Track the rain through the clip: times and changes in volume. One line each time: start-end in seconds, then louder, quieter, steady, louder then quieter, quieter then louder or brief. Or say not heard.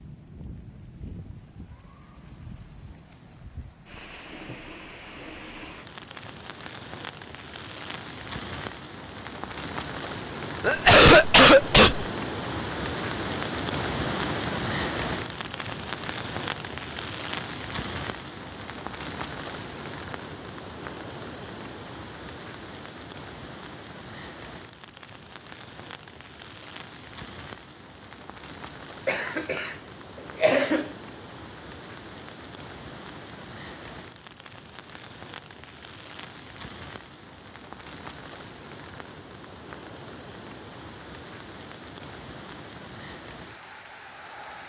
0.0-44.6 louder then quieter.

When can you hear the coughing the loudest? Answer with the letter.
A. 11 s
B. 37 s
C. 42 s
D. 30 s
A.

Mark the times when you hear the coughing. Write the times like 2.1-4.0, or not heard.
10.6-12.1, 29.1-29.7, 30.4-30.9.